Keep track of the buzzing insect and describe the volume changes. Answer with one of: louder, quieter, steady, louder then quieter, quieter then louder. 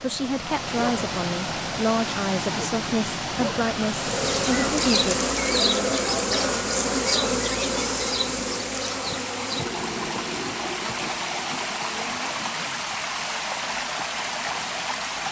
quieter.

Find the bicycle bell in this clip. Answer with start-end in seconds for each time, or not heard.
not heard.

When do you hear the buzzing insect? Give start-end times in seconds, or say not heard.
3.9-15.2.